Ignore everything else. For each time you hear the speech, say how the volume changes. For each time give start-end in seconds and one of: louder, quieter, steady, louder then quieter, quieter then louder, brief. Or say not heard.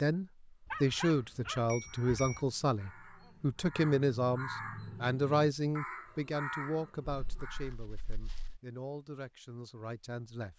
0.0-10.5 quieter.